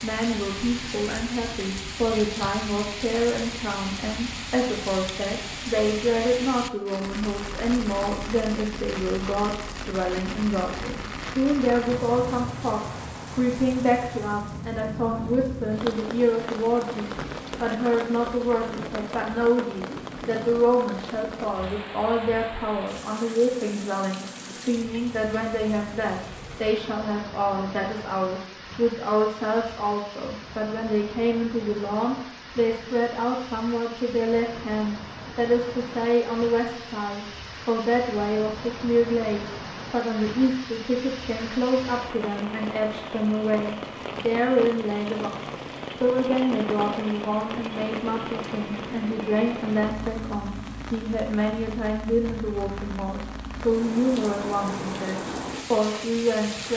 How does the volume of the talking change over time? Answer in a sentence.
The loudness of the talking stays about the same.